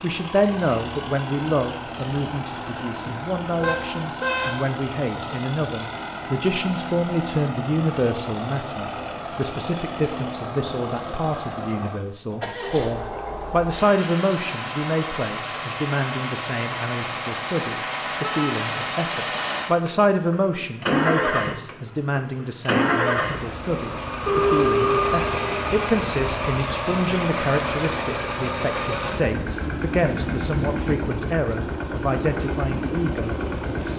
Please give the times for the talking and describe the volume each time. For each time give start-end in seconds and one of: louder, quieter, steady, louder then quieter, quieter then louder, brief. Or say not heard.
0.0-33.9 steady.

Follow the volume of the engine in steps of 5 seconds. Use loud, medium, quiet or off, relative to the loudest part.
medium, medium, medium, loud, loud, loud, loud.